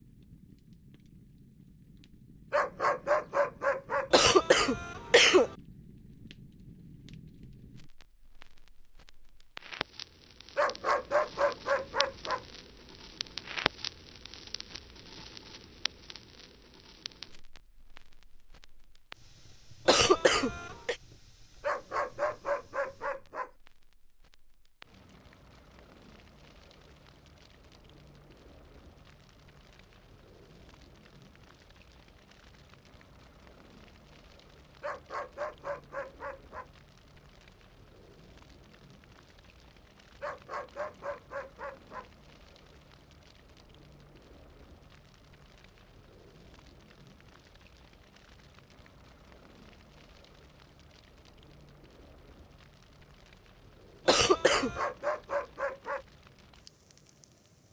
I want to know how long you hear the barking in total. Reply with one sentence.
You can hear the barking for 11 seconds altogether.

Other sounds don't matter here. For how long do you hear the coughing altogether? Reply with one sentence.
You can hear the coughing for 3 seconds altogether.